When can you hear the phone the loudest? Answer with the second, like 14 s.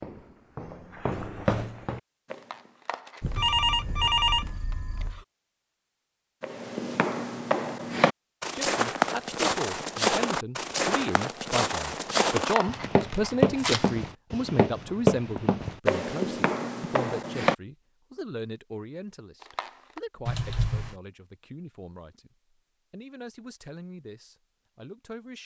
4 s.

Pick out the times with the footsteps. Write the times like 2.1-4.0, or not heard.
0.0-2.8, 6.4-17.6.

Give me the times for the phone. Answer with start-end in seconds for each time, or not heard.
3.2-5.2, 20.2-20.9.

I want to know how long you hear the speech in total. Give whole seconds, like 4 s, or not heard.
17 s.